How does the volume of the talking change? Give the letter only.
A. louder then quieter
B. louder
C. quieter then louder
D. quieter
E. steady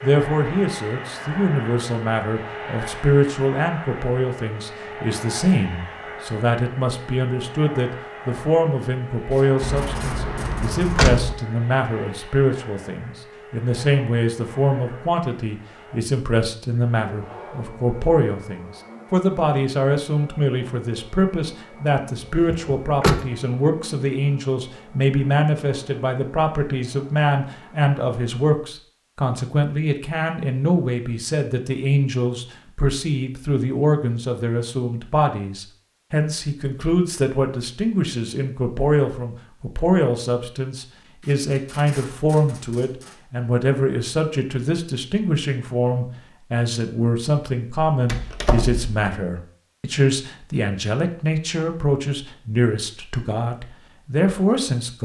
E.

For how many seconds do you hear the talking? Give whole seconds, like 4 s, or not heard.
55 s.